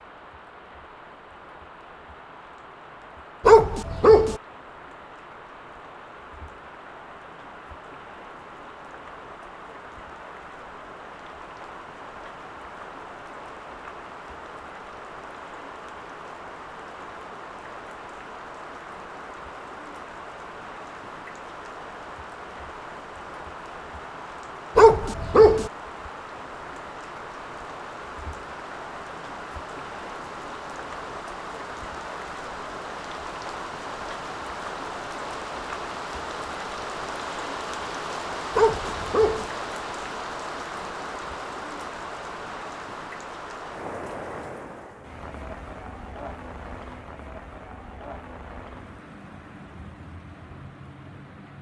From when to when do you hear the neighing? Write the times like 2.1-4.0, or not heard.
not heard.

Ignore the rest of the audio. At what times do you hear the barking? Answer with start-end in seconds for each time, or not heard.
3.5-4.4, 24.8-25.7, 38.5-39.5.